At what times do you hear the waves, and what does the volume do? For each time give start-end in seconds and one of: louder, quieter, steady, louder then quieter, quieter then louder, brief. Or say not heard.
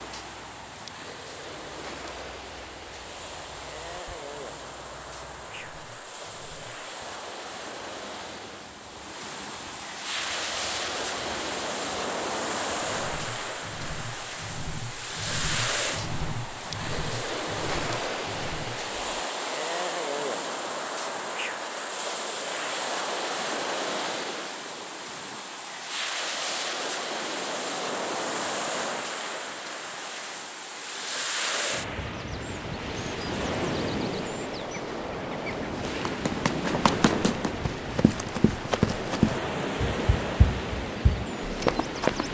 0.0-42.2 louder.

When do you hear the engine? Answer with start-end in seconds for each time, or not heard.
0.0-19.2.